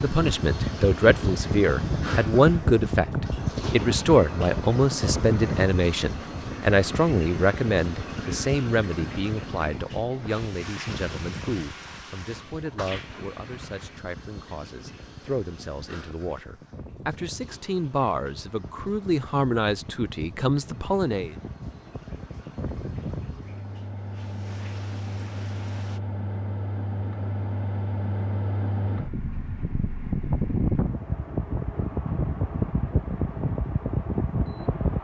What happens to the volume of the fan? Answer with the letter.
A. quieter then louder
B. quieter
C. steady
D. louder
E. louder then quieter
A.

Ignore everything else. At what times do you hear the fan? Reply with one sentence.
You can hear the fan from 0.0 to 35.0 s.